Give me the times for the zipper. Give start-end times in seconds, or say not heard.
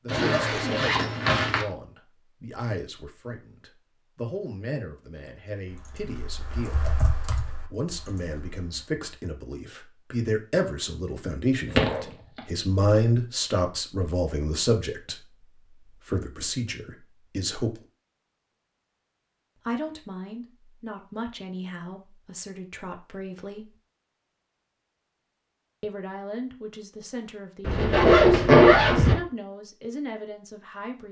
0.1-1.6, 11.7-12.4, 27.6-29.1.